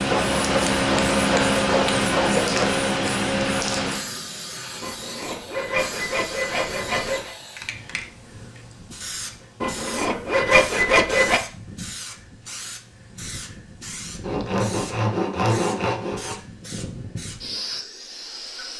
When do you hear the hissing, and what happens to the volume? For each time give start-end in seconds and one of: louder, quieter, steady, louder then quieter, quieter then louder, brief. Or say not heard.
0.0-18.7 quieter.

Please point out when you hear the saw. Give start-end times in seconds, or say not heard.
0.1-2.8, 4.8-7.3, 9.6-11.4, 14.2-16.4.